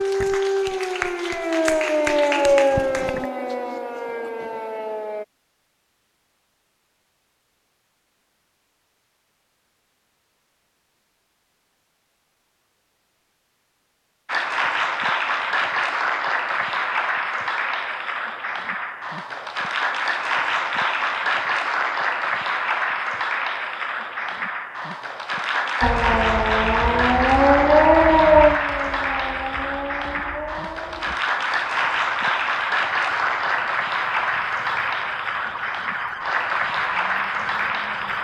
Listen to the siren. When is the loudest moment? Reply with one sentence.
The volume of the siren peaks at 28 seconds.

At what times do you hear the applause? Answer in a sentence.
You can hear the applause from 0.0 to 3.2 s and from 14.2 to 38.1 s.